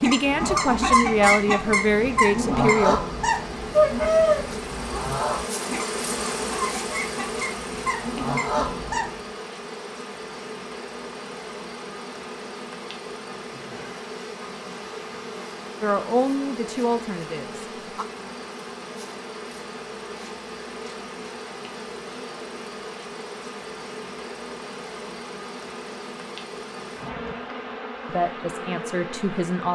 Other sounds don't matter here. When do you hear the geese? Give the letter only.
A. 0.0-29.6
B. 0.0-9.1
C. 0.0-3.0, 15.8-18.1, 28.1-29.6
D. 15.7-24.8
B.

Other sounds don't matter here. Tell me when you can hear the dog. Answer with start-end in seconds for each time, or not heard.
not heard.